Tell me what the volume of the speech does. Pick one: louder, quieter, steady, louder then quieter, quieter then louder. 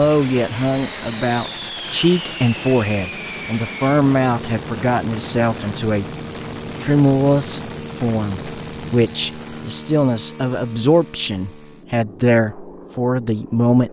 steady.